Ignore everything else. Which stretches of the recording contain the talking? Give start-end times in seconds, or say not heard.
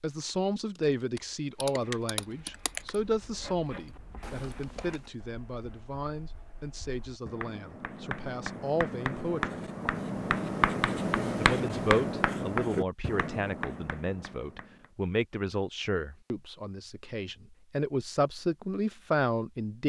0.0-9.6, 11.3-19.8.